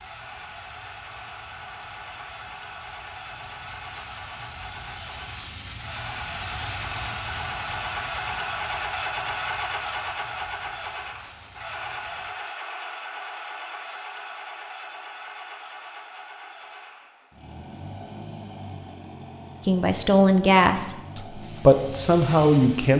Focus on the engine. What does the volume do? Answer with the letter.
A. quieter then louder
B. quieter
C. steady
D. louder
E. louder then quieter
E.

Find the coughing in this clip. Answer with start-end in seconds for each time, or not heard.
not heard.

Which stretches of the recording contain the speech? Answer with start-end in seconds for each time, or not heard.
19.6-22.9.